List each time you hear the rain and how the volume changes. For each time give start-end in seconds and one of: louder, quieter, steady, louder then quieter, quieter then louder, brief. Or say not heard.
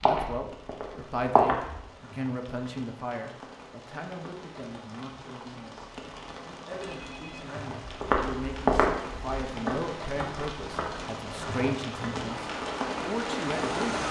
0.2-14.0 louder.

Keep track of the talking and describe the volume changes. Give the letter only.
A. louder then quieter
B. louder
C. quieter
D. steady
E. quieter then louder
E.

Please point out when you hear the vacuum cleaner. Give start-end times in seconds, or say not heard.
12.2-14.0.